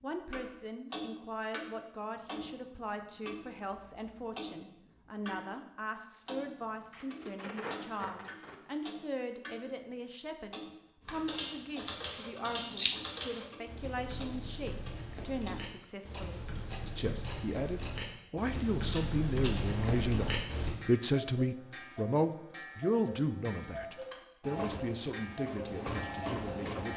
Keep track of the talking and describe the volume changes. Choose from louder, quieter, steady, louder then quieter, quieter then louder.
louder.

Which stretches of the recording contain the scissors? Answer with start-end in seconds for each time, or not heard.
12.7-13.2.